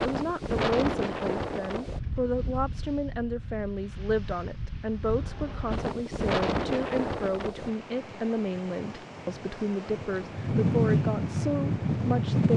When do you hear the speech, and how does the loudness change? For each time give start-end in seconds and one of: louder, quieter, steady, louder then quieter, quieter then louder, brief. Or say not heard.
0.0-12.5 steady.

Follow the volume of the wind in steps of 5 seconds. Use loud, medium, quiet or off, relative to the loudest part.
medium, medium, loud.